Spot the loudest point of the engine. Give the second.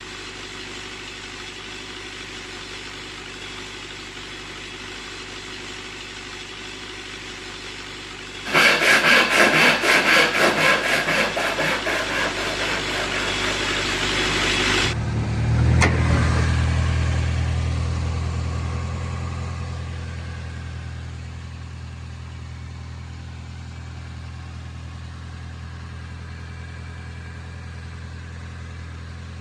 16 s.